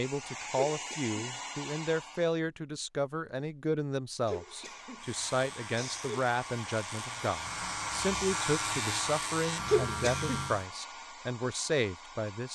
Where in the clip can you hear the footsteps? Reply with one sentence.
The footsteps can't be heard in this clip.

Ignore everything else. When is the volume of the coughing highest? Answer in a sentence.
The loudest moment of the coughing is at 10 seconds.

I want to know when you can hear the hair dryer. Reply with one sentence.
The hair dryer can be heard from 0.0 to 2.4 s and from 4.2 to 12.5 s.